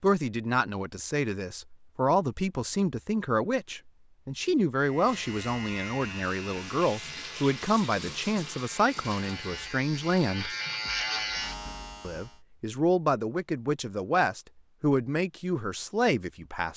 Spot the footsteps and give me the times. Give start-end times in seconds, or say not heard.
not heard.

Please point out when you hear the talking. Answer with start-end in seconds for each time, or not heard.
0.0-10.5, 12.0-16.7.